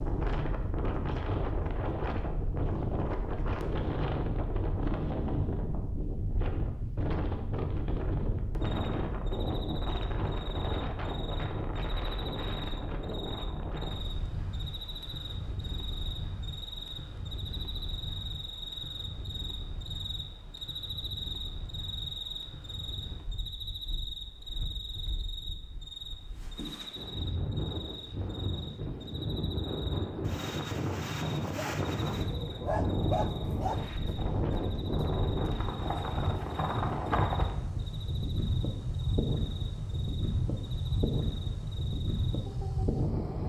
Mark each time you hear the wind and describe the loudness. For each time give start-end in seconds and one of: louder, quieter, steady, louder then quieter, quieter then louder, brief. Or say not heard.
0.0-43.4 quieter then louder.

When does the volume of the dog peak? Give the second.
33 s.